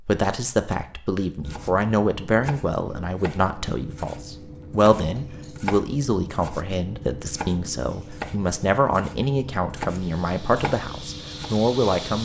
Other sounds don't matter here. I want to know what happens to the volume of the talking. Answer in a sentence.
The loudness of the talking stays about the same.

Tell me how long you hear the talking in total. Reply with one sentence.
You can hear the talking for 12 seconds altogether.